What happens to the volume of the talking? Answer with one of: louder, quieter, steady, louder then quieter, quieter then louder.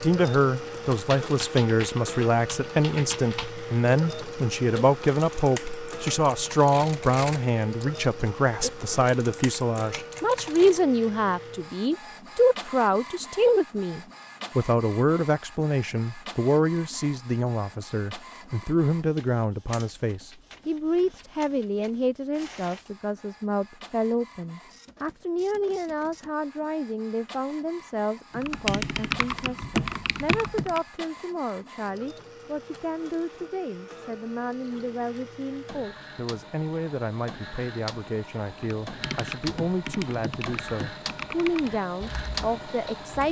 quieter.